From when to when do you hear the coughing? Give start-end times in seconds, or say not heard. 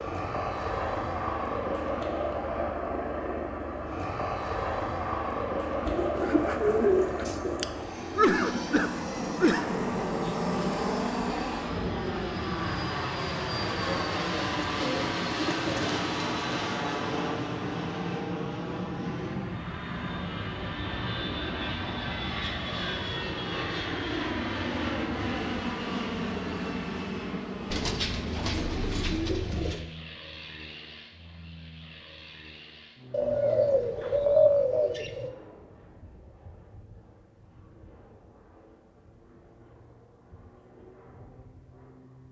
8.2-9.7.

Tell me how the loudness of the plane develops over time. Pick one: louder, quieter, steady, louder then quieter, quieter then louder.
quieter.